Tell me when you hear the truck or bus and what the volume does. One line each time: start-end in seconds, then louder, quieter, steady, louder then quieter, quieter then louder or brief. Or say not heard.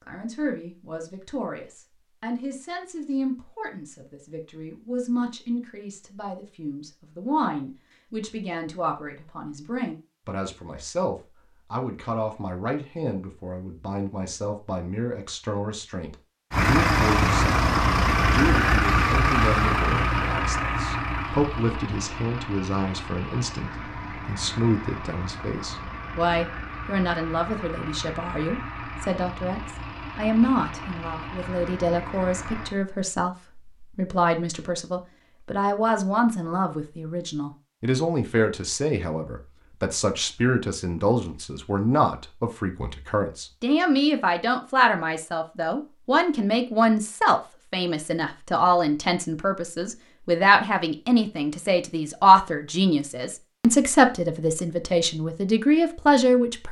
16.5-32.8 quieter.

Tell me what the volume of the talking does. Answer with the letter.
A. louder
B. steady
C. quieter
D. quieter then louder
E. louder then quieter
A.